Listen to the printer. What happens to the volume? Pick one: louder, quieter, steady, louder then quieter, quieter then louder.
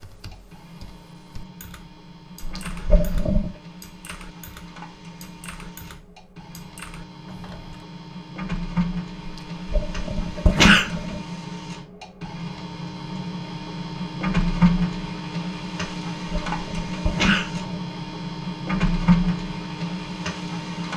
louder.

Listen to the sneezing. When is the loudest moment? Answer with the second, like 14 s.
11 s.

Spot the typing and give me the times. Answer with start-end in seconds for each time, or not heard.
0.0-7.8.